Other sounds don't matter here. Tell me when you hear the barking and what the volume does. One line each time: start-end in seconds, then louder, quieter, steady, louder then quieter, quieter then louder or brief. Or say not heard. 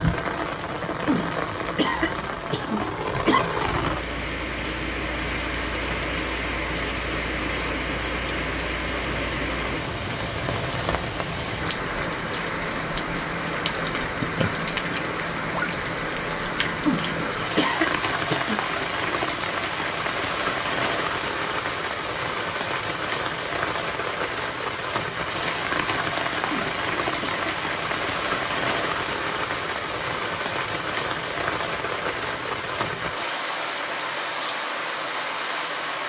not heard.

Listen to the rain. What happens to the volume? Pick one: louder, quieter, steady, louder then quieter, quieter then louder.
steady.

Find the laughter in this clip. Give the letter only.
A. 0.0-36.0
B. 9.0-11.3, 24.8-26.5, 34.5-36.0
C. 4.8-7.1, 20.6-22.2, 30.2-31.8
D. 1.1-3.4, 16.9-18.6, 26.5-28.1
D.